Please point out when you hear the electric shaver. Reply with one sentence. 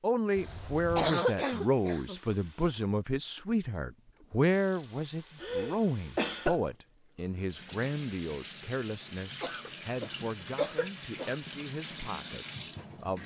The electric shaver can't be heard in this clip.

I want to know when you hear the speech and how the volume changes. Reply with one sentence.
You can hear the speech from 0.0 to 13.2 s, getting quieter.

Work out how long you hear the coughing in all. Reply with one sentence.
You can hear the coughing for 5 seconds altogether.